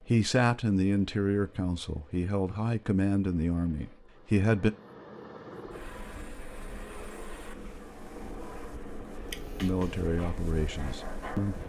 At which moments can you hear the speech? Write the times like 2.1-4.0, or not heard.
0.1-4.7, 9.6-11.6.